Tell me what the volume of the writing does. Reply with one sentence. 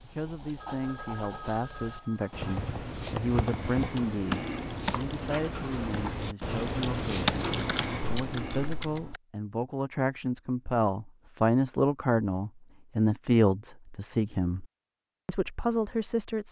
The volume of the writing goes up.